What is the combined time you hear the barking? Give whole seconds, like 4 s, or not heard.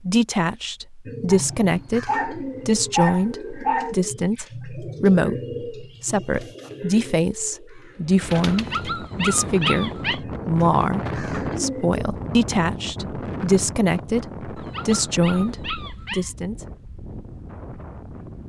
6 s.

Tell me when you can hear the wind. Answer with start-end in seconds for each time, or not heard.
8.0-18.4.